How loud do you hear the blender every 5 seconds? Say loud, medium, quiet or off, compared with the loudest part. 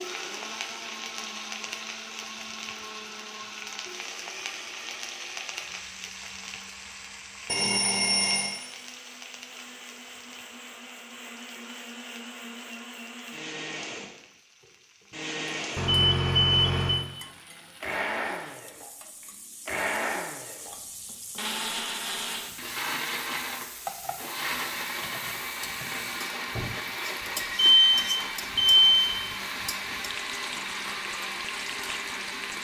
medium, quiet, medium, loud, loud, loud, loud.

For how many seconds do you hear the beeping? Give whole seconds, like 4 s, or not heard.
4 s.